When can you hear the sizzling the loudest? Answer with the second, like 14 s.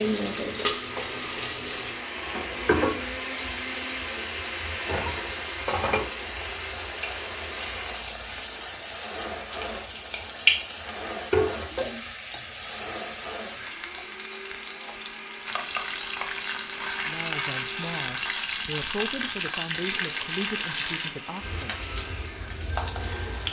11 s.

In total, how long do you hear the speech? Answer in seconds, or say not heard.
5 s.